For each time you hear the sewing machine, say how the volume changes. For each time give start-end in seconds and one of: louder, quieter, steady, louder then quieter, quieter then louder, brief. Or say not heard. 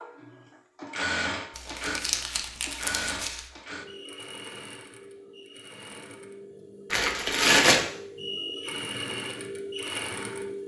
0.0-10.6 quieter then louder.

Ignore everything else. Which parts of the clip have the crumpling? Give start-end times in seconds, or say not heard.
1.6-3.4, 6.9-7.8.